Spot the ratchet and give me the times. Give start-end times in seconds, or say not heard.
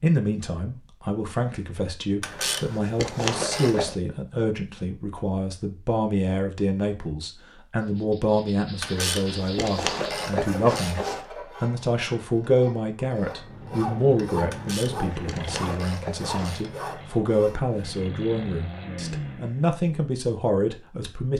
2.2-4.0, 8.8-11.2, 14.5-16.7.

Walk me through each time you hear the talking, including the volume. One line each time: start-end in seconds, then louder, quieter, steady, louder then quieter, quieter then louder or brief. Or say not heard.
0.0-21.3 steady.